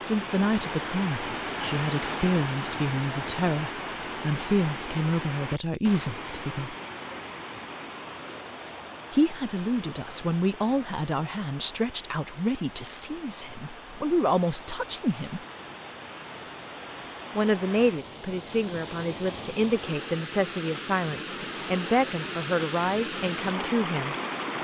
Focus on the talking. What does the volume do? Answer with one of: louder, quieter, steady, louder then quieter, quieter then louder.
steady.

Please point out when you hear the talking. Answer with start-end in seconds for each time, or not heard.
0.0-6.8, 9.1-15.4, 17.4-24.5.